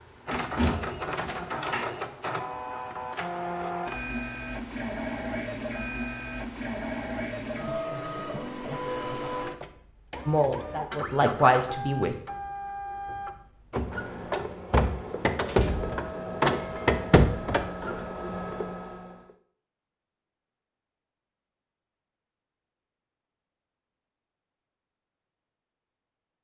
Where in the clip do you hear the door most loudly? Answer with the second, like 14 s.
1 s.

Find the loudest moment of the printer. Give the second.
17 s.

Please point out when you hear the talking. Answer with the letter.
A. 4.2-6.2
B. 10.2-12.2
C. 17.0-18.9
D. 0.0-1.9
B.